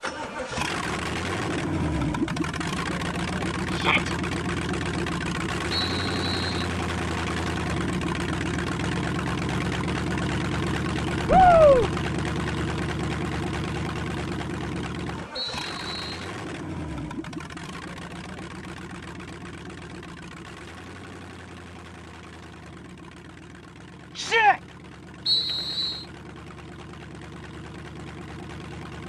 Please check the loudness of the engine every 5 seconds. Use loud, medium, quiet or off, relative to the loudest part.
loud, loud, loud, medium, quiet, quiet.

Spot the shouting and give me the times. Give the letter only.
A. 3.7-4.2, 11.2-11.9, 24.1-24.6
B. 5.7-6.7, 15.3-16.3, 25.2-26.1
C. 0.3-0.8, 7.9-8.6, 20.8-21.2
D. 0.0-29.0
A.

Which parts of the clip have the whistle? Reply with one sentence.
The whistle can be heard from 5.7 to 6.7 s, from 15.3 to 16.3 s and from 25.2 to 26.1 s.